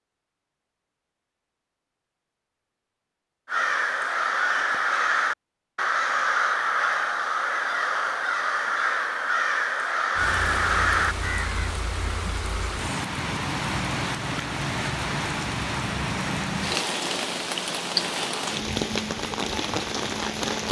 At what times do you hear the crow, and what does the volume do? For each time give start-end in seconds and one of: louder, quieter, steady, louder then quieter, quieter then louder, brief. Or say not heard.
3.5-11.7 steady.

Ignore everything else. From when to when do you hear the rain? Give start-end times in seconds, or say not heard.
10.2-20.6.